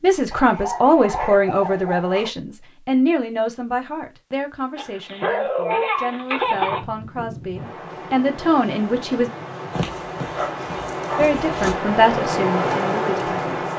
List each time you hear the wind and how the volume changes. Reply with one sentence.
The wind can be heard from 6.3 to 13.7 s, getting louder.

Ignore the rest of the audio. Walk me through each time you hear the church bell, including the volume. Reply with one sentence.
The church bell can't be heard in this clip.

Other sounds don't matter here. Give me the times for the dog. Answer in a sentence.
You can hear the dog from 0.3 to 2.3 s, from 4.8 to 6.8 s and from 9.7 to 11.8 s.